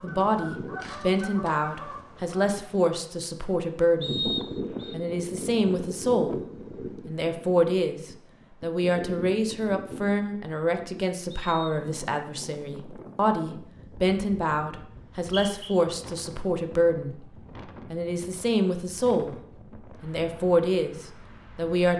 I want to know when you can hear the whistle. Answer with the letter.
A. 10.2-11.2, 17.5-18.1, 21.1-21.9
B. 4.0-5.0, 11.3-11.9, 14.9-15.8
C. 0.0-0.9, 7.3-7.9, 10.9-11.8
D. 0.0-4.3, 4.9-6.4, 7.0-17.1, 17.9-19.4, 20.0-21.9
B.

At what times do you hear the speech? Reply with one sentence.
You can hear the speech from 0.0 to 4.3 s, from 4.9 to 6.4 s, from 7.0 to 17.1 s, from 17.9 to 19.4 s and from 20.0 to 21.9 s.